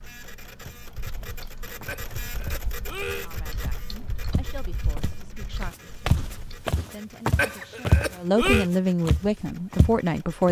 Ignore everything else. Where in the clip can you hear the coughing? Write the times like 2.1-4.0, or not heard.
1.9-3.3, 7.3-8.7.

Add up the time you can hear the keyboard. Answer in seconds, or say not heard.
7 s.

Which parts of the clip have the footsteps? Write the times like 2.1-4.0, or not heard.
0.6-10.4.